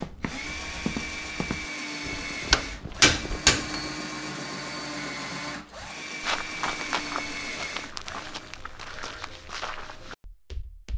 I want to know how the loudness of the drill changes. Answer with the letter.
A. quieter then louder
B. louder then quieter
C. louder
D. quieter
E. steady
E.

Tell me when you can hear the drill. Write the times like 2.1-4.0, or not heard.
0.0-8.6.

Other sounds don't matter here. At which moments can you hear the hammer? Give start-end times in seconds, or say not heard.
2.5-3.9.